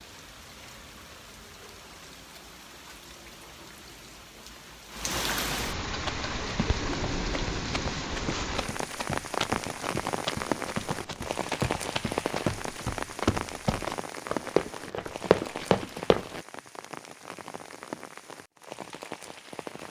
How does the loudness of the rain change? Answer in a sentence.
The volume of the rain goes up, then down.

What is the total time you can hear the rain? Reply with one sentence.
The rain can be heard for 20 seconds in total.